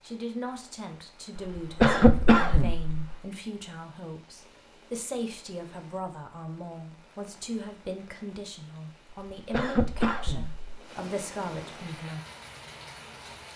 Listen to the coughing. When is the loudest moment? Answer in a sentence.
The volume of the coughing peaks at 2 seconds.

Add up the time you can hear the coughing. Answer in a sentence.
You can hear the coughing for 3 seconds altogether.